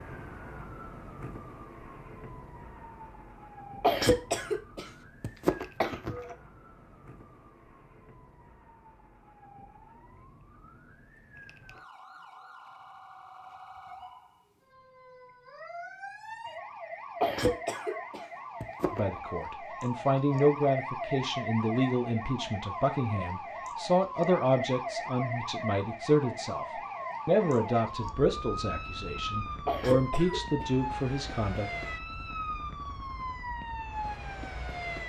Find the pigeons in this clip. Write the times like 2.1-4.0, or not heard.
not heard.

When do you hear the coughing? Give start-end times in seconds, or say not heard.
3.8-6.3, 17.2-19.2, 29.6-30.7.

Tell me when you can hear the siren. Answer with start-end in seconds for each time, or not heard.
0.0-35.0.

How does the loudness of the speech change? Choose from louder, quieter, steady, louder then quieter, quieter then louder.
steady.